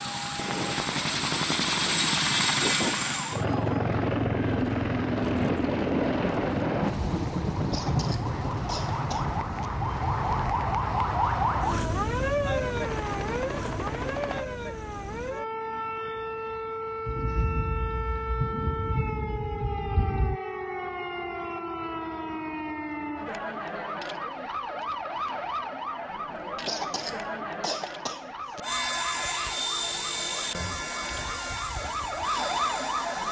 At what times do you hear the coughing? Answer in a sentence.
The coughing can be heard from 7.7 to 9.7 s and from 26.6 to 28.6 s.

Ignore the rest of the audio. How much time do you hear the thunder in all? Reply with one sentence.
The thunder can be heard for 7 seconds in total.